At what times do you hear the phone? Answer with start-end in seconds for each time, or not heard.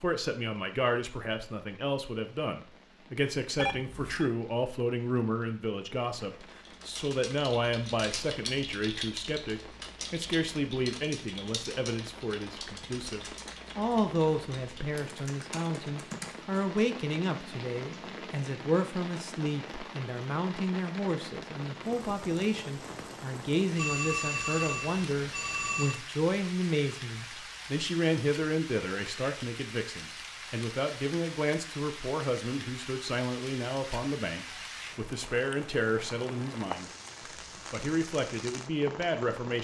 3.5-4.3, 23.8-26.0.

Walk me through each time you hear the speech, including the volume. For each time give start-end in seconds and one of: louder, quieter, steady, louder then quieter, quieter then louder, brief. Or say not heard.
0.0-36.9 steady
37.7-39.5 brief.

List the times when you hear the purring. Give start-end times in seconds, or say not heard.
not heard.